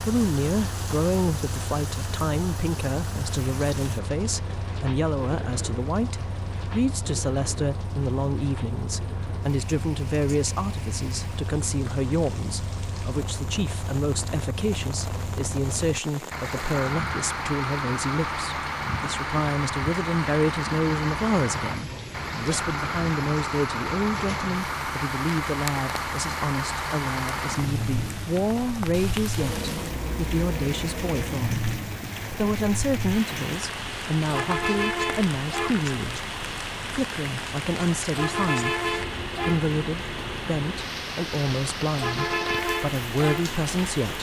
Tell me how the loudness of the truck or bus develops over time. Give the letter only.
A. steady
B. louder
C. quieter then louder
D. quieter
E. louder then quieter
B.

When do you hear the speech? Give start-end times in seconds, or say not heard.
0.1-38.8, 39.5-44.1.